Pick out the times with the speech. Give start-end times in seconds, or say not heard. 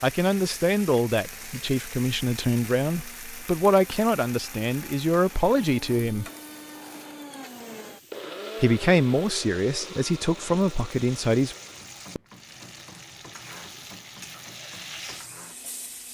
0.0-6.2, 8.6-11.6.